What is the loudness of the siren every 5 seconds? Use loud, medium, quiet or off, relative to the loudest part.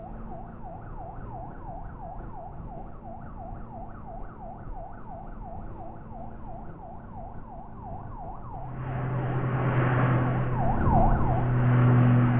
quiet, quiet, loud.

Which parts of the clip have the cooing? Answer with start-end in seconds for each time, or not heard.
not heard.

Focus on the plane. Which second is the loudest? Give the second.
12 s.